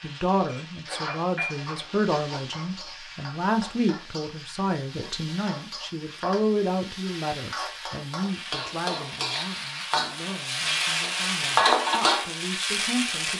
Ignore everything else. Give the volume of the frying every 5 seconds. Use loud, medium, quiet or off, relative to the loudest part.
quiet, medium, loud.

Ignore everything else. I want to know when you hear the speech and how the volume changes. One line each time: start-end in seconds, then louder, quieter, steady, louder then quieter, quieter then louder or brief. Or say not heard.
0.0-13.3 quieter.